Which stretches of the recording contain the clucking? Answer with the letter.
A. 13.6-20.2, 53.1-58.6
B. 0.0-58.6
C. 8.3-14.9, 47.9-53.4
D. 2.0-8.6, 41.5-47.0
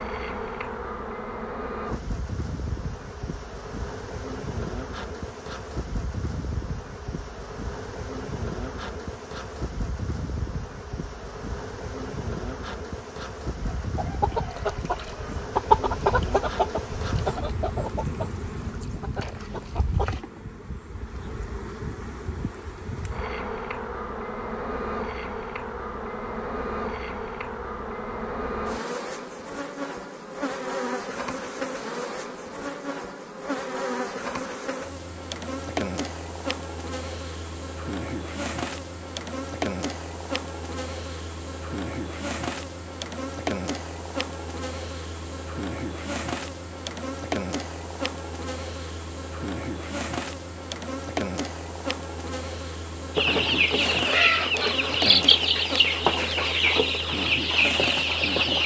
A.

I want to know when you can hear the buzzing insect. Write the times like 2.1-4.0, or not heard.
0.0-58.6.